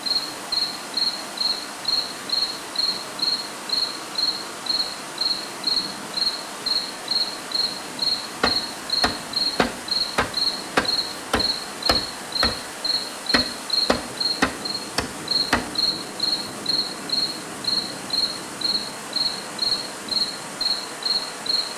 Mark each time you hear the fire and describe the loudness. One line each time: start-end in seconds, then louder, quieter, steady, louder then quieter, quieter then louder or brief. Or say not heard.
not heard.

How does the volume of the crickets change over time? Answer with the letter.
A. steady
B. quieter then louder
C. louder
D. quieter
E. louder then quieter
A.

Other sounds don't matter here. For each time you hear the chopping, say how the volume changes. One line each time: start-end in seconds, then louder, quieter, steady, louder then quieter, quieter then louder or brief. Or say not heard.
8.4-12.6 louder then quieter
13.3-15.7 brief.